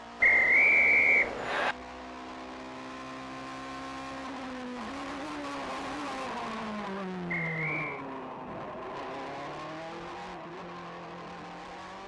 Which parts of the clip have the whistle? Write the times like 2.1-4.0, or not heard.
0.2-1.8, 7.2-8.1.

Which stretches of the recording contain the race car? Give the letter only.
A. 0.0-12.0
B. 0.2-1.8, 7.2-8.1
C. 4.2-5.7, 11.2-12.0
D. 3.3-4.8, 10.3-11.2
A.